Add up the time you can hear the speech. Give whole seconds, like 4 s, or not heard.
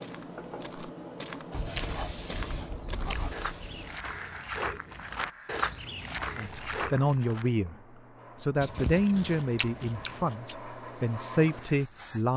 5 s.